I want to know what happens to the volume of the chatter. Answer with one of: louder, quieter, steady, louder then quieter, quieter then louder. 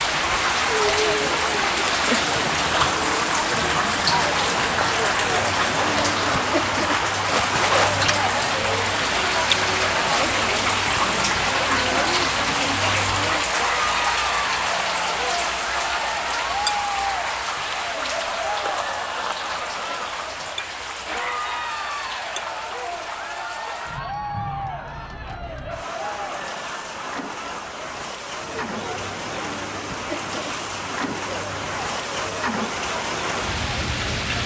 quieter.